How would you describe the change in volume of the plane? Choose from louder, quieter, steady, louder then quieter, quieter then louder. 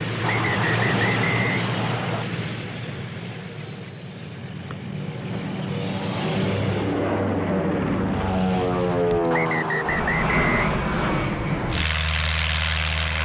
quieter then louder.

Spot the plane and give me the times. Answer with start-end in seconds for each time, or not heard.
0.0-13.2.